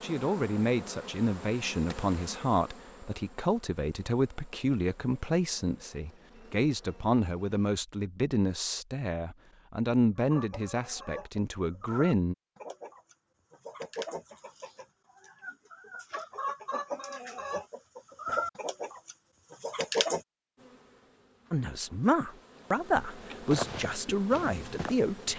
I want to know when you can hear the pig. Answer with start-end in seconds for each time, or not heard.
not heard.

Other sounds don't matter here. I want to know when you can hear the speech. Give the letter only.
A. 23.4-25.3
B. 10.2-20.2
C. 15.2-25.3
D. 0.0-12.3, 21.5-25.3
D.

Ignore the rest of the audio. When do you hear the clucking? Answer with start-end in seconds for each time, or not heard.
10.2-20.2.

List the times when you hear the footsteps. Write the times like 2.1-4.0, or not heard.
23.4-25.3.